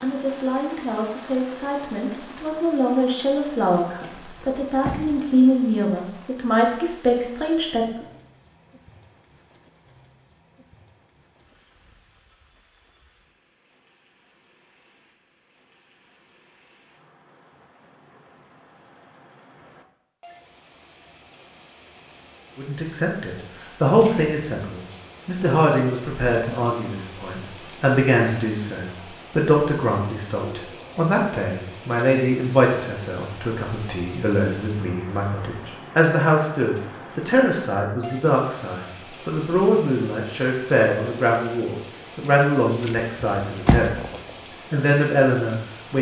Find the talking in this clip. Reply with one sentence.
You can hear the talking from 0.0 to 8.1 s and from 22.6 to 45.9 s.